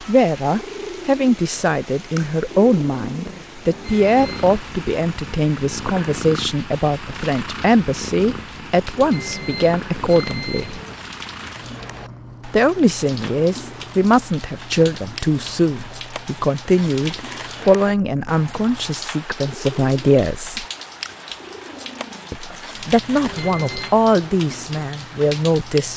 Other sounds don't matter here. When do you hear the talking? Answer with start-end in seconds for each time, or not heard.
0.0-10.8, 12.4-20.6, 22.3-25.9.